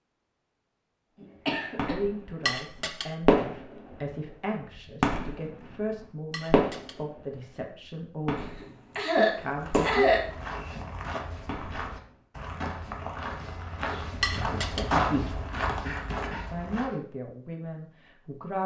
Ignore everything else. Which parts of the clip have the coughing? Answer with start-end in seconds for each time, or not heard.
1.2-1.9, 8.3-10.8, 15.4-16.9.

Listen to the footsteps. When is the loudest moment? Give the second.
15 s.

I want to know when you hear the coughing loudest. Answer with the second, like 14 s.
10 s.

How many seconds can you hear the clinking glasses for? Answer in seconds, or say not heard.
2 s.